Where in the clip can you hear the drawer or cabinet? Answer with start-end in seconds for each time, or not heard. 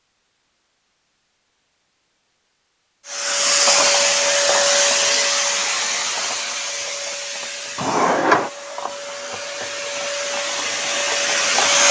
7.8-8.5.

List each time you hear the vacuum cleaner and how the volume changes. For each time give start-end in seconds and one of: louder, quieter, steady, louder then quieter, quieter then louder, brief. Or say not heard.
3.0-11.8 quieter then louder.